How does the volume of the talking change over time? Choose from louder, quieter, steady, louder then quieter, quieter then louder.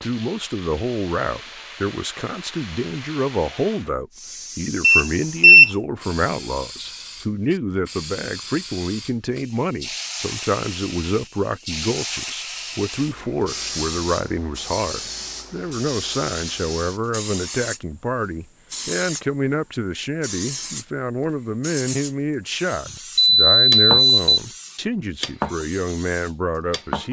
steady.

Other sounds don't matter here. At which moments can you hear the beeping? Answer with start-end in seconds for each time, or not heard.
4.8-5.7, 23.1-24.4.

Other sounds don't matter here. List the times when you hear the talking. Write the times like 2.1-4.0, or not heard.
0.0-27.0.